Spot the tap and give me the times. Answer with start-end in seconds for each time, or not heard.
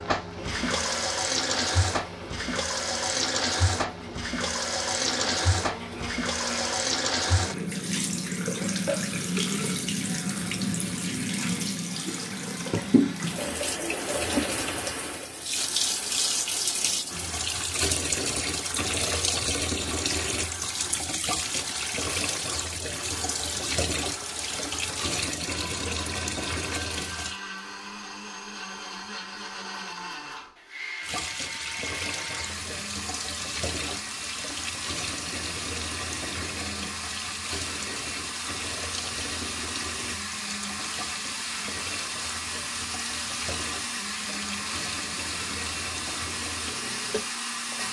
0.0-27.4, 31.0-47.8.